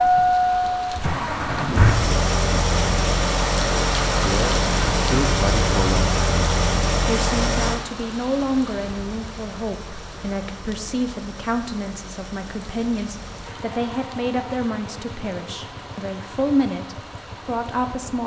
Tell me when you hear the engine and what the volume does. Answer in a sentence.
You can hear the engine from 0.0 to 18.2 s, getting quieter.